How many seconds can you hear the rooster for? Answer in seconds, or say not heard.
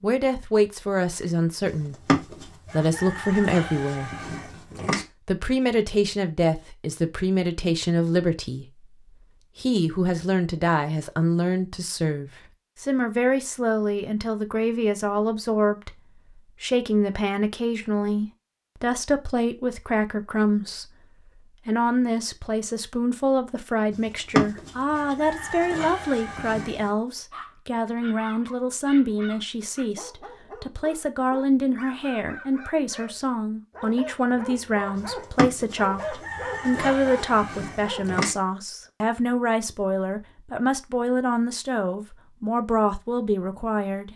10 s.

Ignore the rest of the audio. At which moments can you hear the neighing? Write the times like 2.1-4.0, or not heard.
not heard.